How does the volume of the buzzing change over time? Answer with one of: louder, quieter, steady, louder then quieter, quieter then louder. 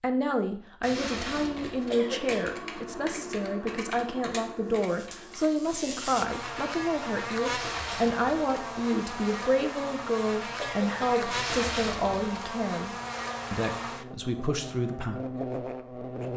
steady.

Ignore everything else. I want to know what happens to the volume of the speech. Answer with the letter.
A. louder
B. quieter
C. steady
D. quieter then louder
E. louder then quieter
C.